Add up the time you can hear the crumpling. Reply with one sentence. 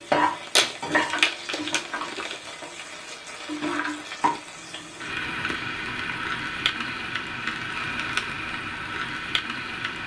You can hear the crumpling for 2 seconds altogether.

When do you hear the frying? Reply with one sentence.
The frying can be heard from 0.0 to 10.0 s.